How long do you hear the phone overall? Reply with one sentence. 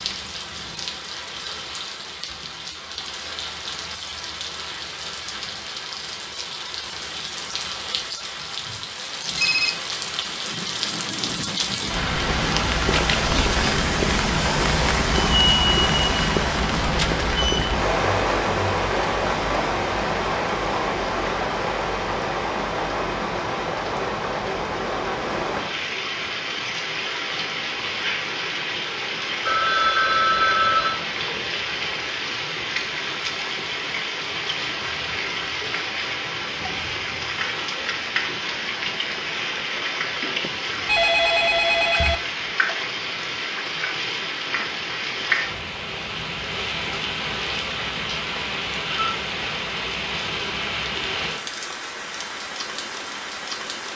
You can hear the phone for 4 seconds altogether.